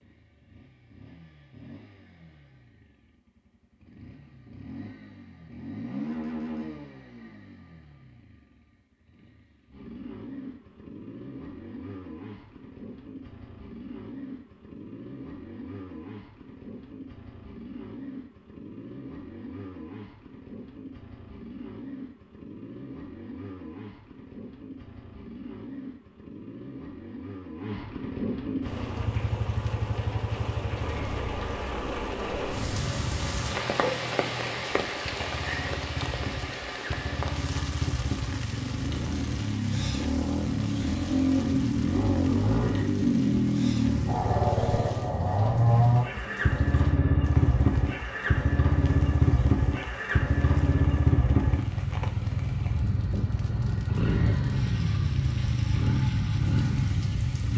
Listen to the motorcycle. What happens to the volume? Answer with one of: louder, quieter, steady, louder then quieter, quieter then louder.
louder.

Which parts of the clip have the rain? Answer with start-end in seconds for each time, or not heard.
28.6-57.5.